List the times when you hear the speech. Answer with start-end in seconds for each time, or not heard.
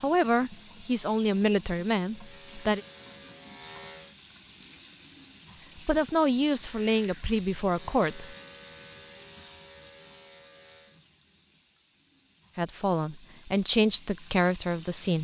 0.0-2.8, 5.8-8.3, 12.6-15.1.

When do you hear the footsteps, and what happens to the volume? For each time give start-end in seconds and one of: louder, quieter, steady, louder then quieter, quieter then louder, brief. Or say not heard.
not heard.